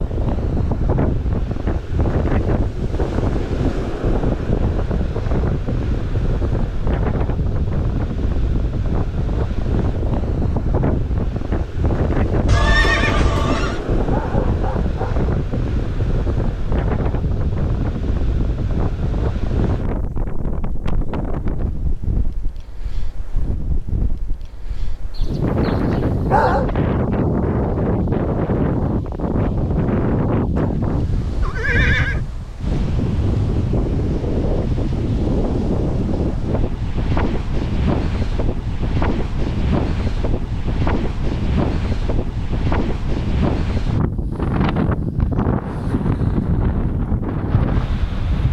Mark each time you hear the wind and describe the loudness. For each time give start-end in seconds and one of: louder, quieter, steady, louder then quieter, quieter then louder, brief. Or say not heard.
0.0-48.4 steady.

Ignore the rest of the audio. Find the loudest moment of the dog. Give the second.
26 s.